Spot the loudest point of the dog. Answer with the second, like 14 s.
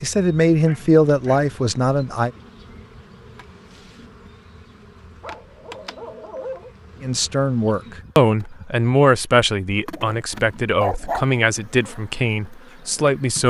11 s.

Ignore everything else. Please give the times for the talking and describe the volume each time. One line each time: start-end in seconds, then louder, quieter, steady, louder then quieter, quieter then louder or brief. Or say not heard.
0.0-2.3 brief
7.0-13.4 quieter.